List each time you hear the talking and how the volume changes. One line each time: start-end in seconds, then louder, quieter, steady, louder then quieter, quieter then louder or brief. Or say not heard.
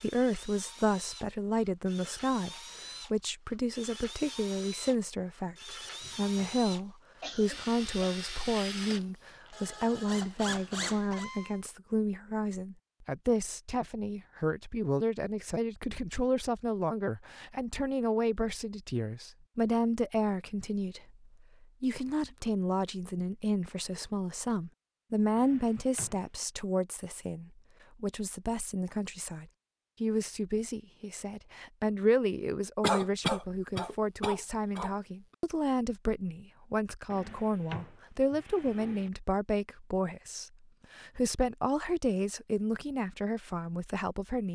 0.0-44.5 steady.